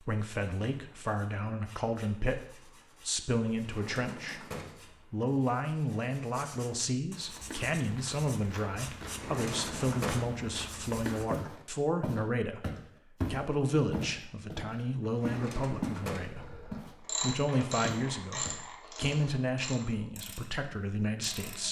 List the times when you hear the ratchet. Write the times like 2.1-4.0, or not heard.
16.4-21.6.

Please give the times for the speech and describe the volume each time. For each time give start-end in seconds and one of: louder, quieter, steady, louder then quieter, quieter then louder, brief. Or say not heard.
0.0-4.5 steady
5.1-21.6 steady.